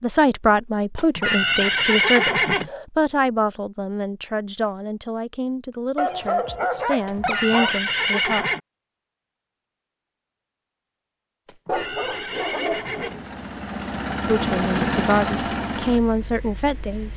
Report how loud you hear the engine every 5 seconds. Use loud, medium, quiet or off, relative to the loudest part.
off, off, loud, loud.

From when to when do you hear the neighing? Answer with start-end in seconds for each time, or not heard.
0.9-2.7, 7.0-8.6, 11.4-13.2.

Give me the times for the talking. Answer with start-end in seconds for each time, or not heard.
0.0-8.4, 14.2-17.1.